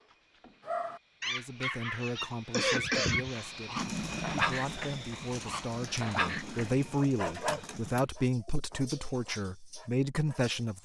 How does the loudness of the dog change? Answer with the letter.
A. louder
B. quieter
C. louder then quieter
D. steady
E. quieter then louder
B.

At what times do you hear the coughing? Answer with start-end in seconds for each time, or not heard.
1.6-3.5.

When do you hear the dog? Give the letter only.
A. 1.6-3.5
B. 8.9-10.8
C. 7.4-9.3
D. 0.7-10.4
D.